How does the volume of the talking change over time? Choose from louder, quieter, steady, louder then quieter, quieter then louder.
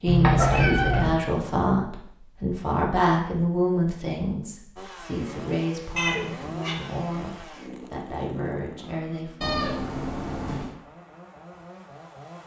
quieter.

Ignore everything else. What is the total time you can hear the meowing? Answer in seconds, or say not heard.
3 s.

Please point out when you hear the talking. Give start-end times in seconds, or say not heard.
0.0-9.7.